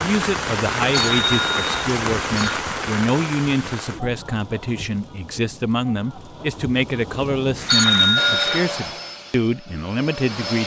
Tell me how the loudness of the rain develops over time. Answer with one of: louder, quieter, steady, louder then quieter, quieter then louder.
quieter then louder.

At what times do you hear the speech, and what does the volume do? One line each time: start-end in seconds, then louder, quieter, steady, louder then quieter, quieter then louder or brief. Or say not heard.
0.0-10.6 steady.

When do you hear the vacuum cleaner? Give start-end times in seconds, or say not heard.
8.2-10.6.